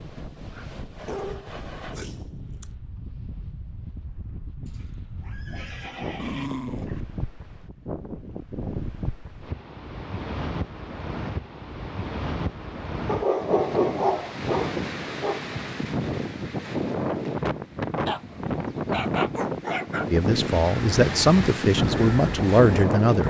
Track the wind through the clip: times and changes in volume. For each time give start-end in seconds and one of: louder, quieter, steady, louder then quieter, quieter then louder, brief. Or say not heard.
0.0-23.2 louder.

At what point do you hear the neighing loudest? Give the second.
6 s.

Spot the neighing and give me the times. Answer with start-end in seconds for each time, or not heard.
4.7-6.5.